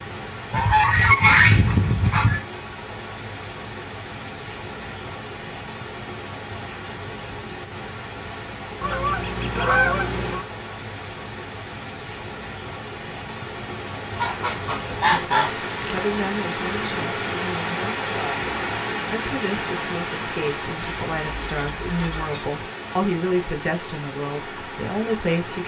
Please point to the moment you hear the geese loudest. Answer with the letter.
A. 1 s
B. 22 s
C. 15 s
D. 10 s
A.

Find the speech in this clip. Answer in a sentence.
You can hear the speech from 15.1 to 25.6 s.